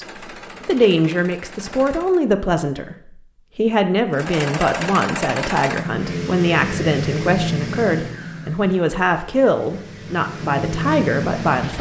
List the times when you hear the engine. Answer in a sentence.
The engine can be heard from 0.0 to 2.3 s and from 4.1 to 11.7 s.